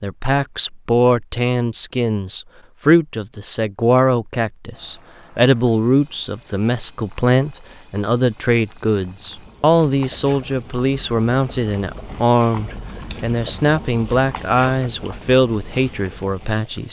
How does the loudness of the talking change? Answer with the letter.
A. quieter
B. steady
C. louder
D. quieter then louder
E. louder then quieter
B.